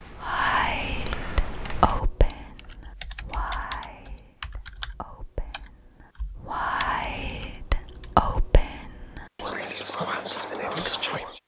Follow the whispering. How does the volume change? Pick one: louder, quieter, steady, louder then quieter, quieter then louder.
quieter then louder.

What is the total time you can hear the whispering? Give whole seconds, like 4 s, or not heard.
11 s.